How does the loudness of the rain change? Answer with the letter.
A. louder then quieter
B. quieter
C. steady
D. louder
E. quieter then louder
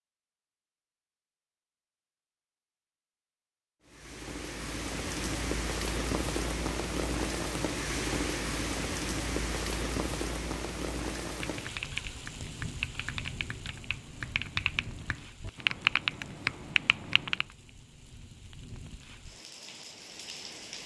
B.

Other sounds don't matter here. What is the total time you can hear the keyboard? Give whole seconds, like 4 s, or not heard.
6 s.